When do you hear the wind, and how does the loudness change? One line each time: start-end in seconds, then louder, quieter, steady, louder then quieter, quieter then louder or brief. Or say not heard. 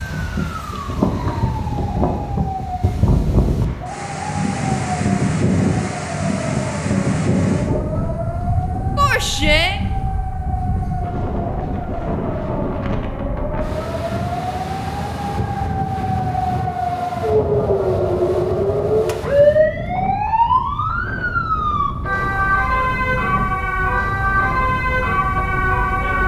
0.0-26.2 quieter.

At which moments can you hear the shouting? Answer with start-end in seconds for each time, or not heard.
8.9-9.8.